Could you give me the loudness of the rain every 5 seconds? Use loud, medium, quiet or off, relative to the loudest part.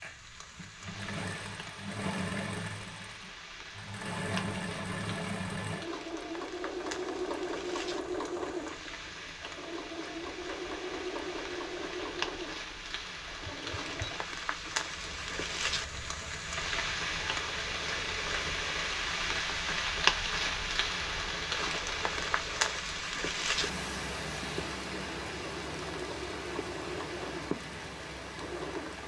quiet, quiet, medium, loud, loud, medium.